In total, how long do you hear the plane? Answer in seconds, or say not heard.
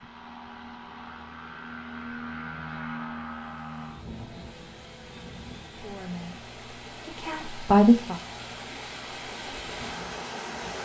11 s.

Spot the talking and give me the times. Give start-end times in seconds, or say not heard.
5.8-8.2.